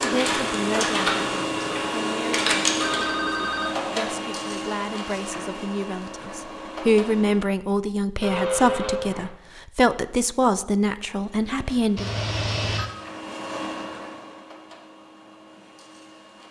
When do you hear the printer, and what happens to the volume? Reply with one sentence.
You can hear the printer from 0.0 to 7.5 s, getting quieter; and from 11.2 to 16.4 s, getting louder then quieter.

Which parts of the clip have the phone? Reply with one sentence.
The phone can be heard from 2.8 to 3.8 s, from 8.2 to 9.3 s and from 11.9 to 12.9 s.